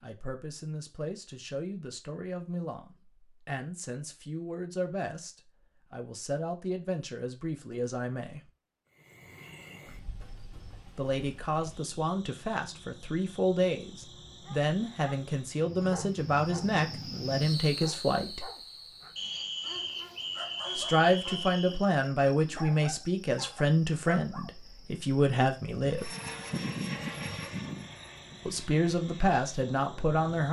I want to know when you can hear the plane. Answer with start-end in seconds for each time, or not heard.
25.8-30.2.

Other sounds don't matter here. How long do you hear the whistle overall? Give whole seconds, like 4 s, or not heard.
3 s.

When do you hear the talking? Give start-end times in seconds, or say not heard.
0.0-8.4, 10.9-18.5, 20.8-26.1, 28.4-30.4.